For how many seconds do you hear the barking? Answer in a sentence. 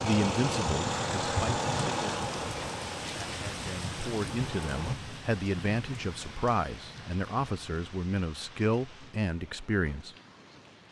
You can't hear the barking here.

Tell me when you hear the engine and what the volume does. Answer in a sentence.
The engine can be heard from 0.0 to 5.0 s, getting quieter.